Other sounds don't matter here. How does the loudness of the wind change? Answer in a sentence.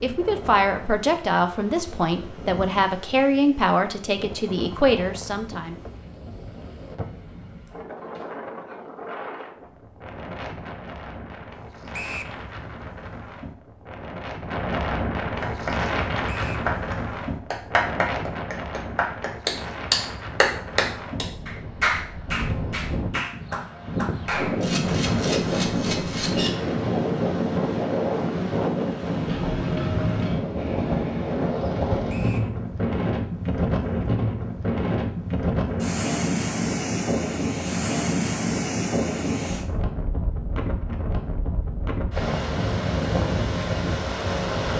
The volume of the wind goes up.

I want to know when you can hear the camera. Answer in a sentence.
The camera can be heard from 24.6 to 26.5 s.